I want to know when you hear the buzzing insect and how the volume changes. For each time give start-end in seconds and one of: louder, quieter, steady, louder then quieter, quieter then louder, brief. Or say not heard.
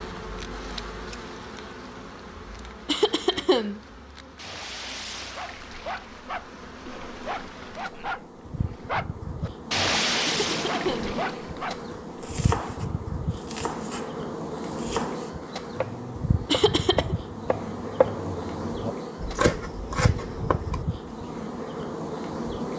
0.0-22.7 louder.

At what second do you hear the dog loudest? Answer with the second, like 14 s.
10 s.